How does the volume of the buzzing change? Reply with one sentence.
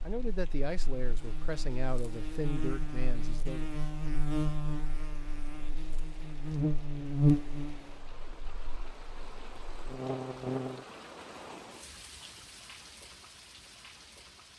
The loudness of the buzzing goes up, then down.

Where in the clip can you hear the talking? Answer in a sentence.
The talking can be heard from 0.0 to 3.6 s.